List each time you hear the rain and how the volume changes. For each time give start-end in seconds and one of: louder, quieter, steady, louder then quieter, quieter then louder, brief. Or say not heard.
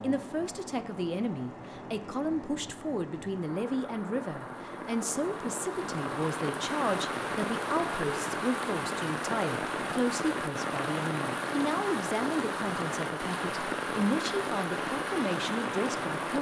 0.0-16.3 louder.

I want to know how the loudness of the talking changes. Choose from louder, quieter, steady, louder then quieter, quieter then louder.
steady.